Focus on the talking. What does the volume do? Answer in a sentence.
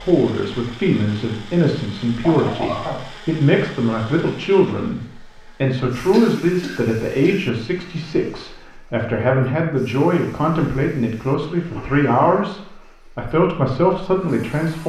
The loudness of the talking stays about the same.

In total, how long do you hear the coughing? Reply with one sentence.
You can hear the coughing for 4 seconds altogether.